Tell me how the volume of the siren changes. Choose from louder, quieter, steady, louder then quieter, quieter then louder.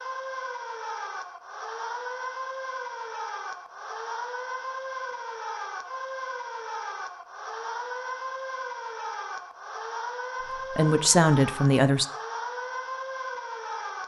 steady.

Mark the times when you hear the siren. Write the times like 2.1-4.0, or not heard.
0.0-14.0.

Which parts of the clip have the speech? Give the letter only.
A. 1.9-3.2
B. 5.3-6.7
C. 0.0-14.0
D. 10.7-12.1
D.